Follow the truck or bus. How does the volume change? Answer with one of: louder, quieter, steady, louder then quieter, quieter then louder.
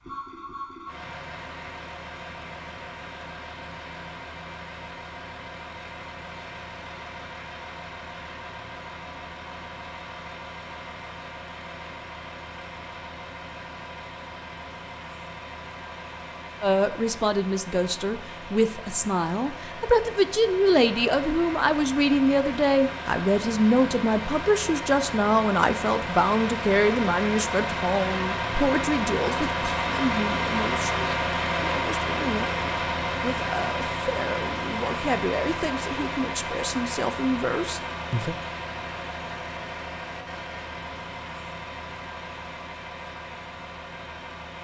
louder then quieter.